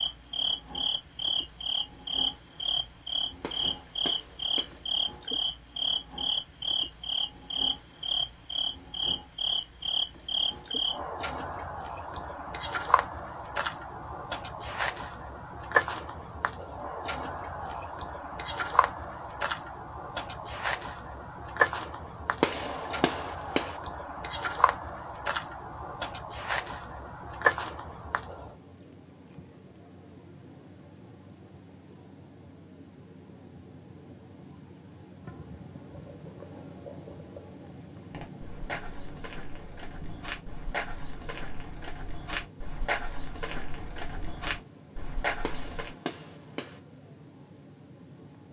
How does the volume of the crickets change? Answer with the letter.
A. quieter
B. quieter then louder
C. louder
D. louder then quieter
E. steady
E.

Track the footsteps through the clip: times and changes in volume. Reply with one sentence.
The footsteps can be heard from 38.1 to 46.0 s, getting louder.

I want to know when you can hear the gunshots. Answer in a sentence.
You can hear the gunshots from 3.4 to 4.8 s, from 22.4 to 23.8 s and from 45.4 to 46.8 s.